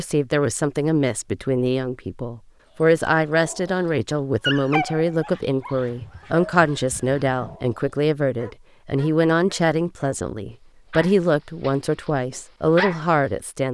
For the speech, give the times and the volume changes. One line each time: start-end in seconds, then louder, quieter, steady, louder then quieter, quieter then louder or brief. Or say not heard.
0.0-13.6 steady.